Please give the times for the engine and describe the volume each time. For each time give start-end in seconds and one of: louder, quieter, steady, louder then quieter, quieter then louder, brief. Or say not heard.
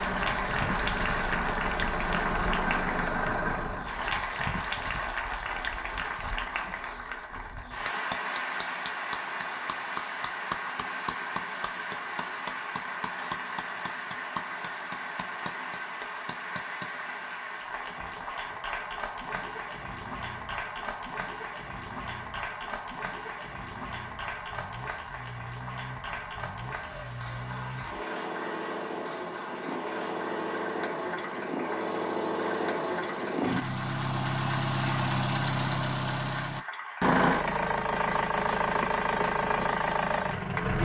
0.0-4.0 steady
18.9-40.8 louder.